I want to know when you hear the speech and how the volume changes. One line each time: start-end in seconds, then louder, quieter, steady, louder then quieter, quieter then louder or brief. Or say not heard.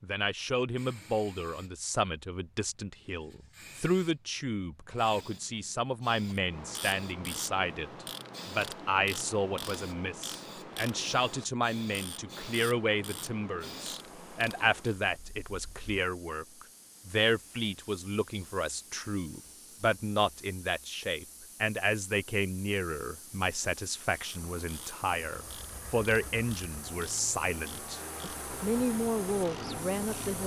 0.0-30.4 steady.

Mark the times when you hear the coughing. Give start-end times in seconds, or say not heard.
not heard.